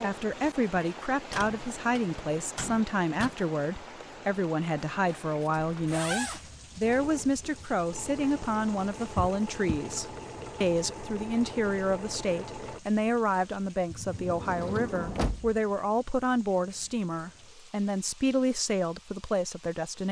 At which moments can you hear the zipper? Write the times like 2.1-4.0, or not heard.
5.0-6.5.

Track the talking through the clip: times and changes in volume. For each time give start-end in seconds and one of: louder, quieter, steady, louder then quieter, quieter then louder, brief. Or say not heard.
0.0-20.0 steady.